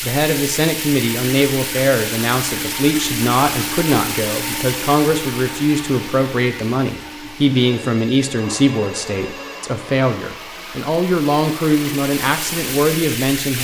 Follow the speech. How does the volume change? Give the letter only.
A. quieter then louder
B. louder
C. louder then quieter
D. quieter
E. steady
E.